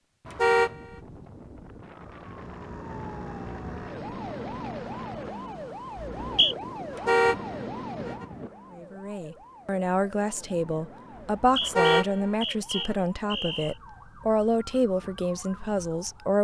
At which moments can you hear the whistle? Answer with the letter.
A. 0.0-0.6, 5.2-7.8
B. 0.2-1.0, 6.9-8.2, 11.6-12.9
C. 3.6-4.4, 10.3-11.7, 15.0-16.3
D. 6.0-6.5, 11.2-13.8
D.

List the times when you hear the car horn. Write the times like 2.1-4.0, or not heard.
0.2-1.0, 6.9-8.2, 11.6-12.9.